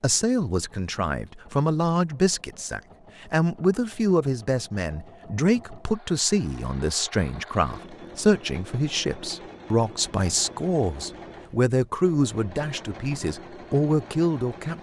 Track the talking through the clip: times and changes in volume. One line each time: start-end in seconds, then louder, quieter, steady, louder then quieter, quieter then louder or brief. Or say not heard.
0.0-14.7 steady.